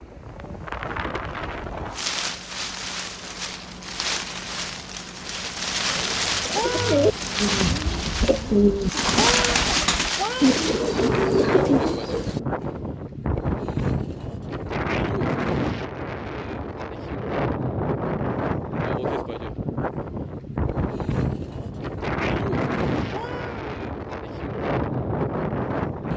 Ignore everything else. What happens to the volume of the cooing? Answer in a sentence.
The volume of the cooing stays about the same.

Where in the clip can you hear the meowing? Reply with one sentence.
The meowing can be heard from 6.5 to 7.2 s, from 9.1 to 10.5 s and from 23.1 to 23.7 s.